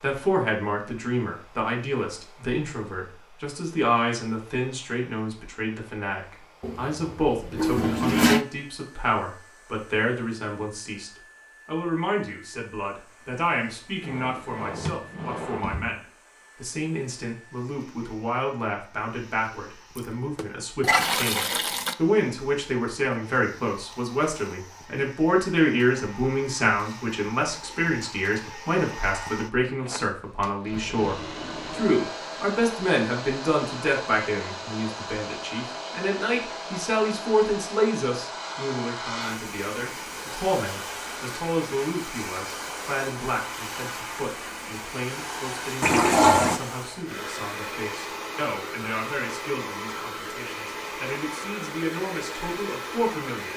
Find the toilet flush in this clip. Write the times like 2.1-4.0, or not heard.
6.6-8.4, 19.9-21.9, 45.8-46.6.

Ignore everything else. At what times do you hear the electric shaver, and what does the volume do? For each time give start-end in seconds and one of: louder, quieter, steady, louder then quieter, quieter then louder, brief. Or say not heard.
not heard.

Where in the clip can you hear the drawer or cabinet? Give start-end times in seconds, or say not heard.
14.0-15.9, 30.6-32.0.